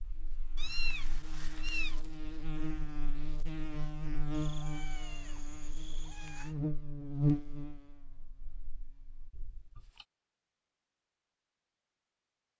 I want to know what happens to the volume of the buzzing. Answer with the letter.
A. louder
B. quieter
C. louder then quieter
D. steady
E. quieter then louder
A.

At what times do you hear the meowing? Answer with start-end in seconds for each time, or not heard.
0.6-2.0, 4.3-6.5, 9.3-10.1.